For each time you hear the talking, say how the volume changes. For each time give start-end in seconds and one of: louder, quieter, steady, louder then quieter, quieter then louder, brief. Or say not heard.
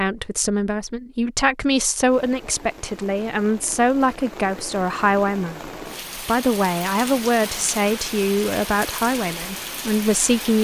0.0-10.5 steady.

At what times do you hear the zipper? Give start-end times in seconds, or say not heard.
not heard.